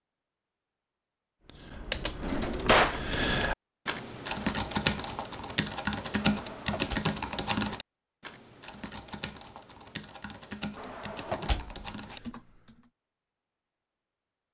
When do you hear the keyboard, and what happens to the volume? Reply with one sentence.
The keyboard can be heard from 1.4 to 12.9 s, getting quieter.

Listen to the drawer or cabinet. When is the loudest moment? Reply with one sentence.
The volume of the drawer or cabinet peaks at 3 seconds.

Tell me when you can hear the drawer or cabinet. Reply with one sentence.
The drawer or cabinet can be heard from 2.2 to 3.0 s, from 6.2 to 7.0 s and from 10.8 to 12.2 s.